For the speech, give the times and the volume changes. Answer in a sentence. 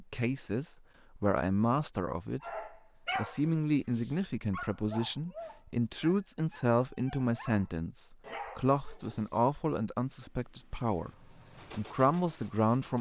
You can hear the speech briefly from 0.0 to 2.4 s; from 3.1 to 11.1 s, at a steady volume; and briefly from 11.7 to 12.9 s.